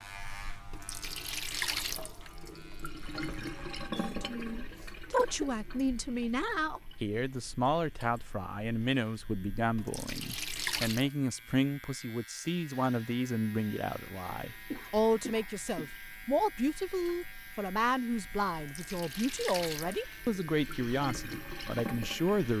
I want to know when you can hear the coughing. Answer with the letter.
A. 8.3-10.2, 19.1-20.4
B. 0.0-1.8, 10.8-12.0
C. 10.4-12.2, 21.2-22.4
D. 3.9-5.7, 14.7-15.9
D.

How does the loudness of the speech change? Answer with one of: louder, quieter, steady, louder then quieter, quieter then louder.
steady.